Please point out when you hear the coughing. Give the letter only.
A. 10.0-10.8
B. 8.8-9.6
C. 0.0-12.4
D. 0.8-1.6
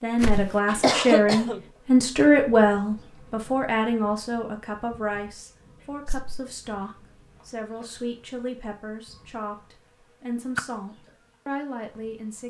D.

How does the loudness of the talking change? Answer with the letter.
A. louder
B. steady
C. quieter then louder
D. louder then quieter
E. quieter
E.